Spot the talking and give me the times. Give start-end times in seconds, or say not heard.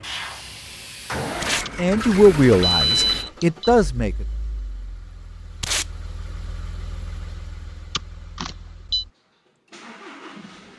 1.8-4.2.